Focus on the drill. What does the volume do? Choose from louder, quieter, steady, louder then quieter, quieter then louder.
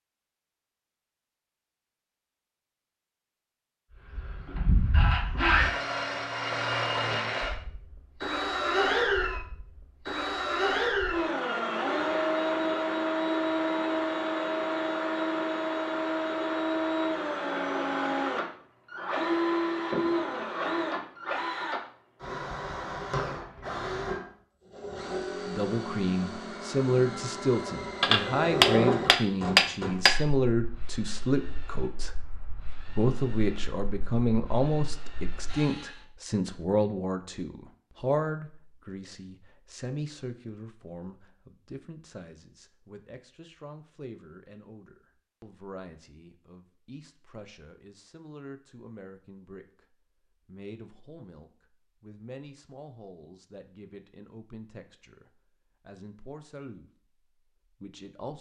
quieter.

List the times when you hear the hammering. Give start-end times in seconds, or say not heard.
28.0-30.1.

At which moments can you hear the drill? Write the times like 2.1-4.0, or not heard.
4.1-36.0.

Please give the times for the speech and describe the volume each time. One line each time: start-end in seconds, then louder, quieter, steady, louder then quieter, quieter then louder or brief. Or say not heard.
25.4-56.9 quieter
57.7-58.3 brief.